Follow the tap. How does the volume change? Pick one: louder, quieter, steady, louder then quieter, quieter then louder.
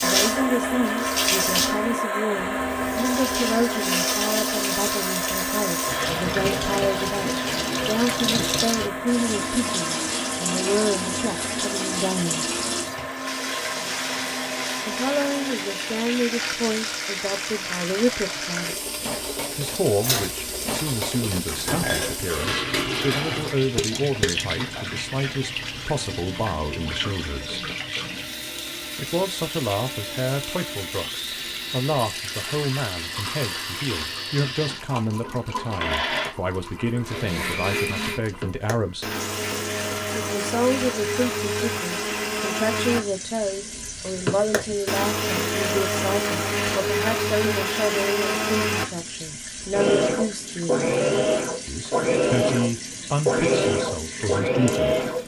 quieter.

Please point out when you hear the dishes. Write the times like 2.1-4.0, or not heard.
18.9-24.4.